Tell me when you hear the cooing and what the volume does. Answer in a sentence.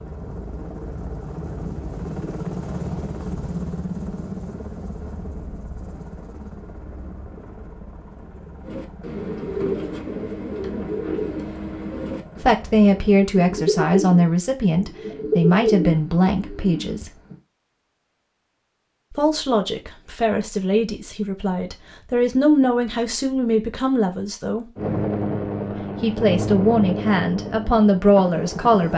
You can hear the cooing from 8.6 to 17.4 s, at a steady volume.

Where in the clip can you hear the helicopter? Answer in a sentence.
You can hear the helicopter from 0.0 to 13.2 s and from 24.8 to 28.9 s.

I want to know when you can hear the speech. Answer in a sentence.
You can hear the speech from 12.4 to 17.1 s, from 19.1 to 24.6 s and from 25.7 to 28.9 s.